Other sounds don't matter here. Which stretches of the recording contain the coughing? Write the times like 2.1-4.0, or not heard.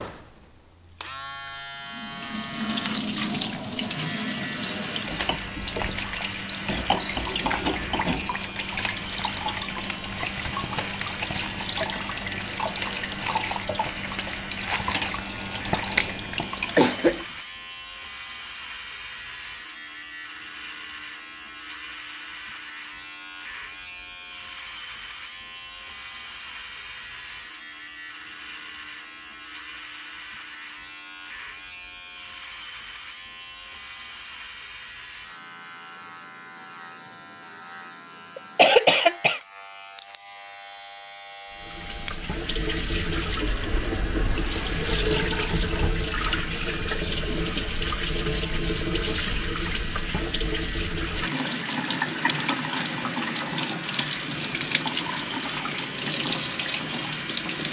15.9-17.2, 38.4-39.4.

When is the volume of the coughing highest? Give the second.
39 s.